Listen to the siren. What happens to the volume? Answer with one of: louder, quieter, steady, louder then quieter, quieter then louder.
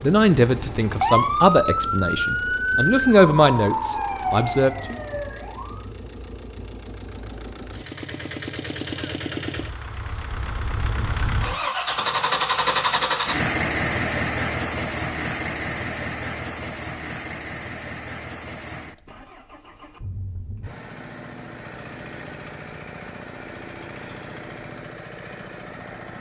quieter.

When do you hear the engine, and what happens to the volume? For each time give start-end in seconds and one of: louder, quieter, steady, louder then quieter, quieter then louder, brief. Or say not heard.
0.0-26.1 louder then quieter.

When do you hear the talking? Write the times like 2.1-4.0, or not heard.
0.0-5.0.